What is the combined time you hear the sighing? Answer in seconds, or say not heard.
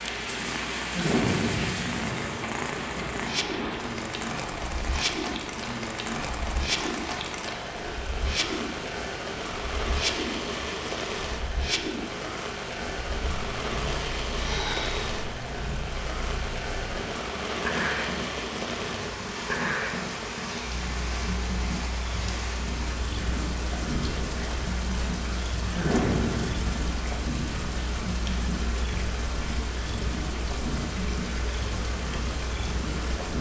3 s.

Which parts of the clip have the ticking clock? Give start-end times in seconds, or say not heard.
not heard.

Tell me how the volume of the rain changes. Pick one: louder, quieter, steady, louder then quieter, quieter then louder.
steady.